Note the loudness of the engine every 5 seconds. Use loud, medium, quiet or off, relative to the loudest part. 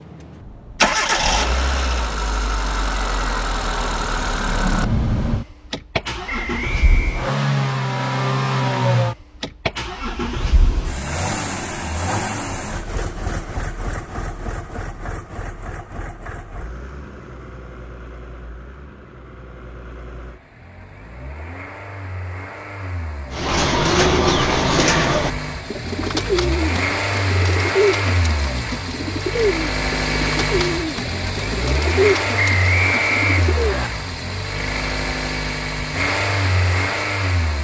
loud, loud, medium, quiet, quiet, loud, loud, loud.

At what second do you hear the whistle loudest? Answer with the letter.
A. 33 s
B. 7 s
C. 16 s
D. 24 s
A.